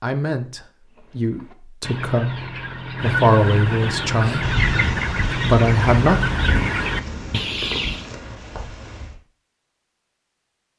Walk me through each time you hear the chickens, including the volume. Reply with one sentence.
The chickens can be heard from 0.9 to 8.1 s, getting louder.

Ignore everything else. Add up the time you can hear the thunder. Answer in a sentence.
The thunder can be heard for 5 seconds in total.